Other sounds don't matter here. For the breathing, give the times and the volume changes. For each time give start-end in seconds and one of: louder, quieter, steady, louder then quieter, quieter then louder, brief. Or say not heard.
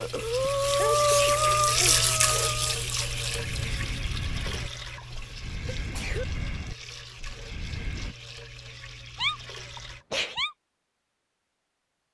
0.0-8.2 quieter.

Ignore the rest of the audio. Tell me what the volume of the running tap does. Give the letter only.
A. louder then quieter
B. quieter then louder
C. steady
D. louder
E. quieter
E.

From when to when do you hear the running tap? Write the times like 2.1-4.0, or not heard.
0.0-10.1.